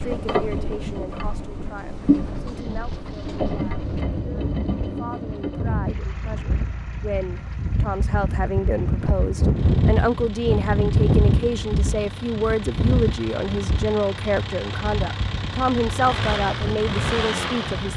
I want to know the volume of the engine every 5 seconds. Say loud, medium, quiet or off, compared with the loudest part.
loud, medium, medium, loud.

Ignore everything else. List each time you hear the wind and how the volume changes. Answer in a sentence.
The wind can be heard from 0.0 to 17.9 s, getting louder then quieter.